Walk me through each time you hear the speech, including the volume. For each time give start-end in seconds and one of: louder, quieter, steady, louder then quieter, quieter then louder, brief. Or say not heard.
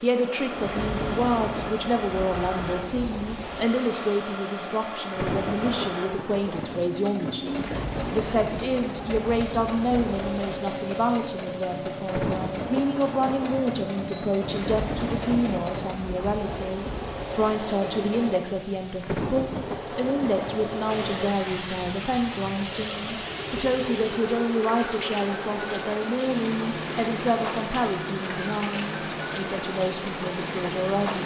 0.0-31.2 steady.